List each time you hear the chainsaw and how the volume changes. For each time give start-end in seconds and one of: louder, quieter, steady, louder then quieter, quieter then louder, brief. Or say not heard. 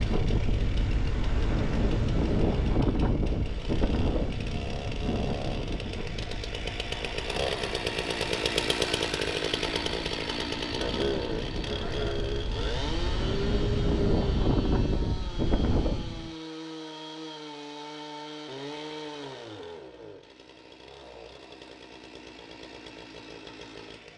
0.0-24.1 louder then quieter.